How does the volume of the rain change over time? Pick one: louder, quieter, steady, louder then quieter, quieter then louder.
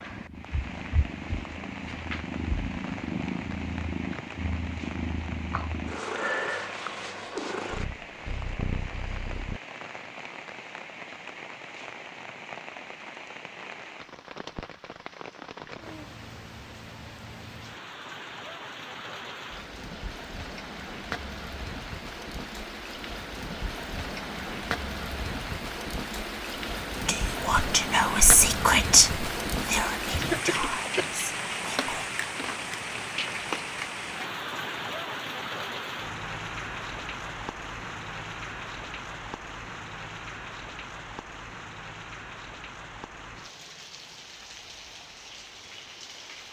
louder then quieter.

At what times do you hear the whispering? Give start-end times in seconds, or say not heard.
27.1-32.1.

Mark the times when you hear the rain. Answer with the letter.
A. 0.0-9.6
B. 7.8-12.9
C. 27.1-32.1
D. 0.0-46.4
D.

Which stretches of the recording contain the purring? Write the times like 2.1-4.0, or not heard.
0.0-9.6.